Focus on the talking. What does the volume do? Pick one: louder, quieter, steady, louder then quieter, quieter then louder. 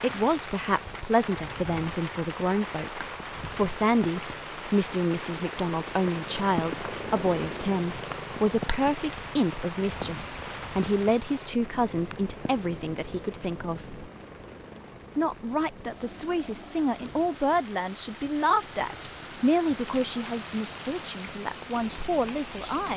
steady.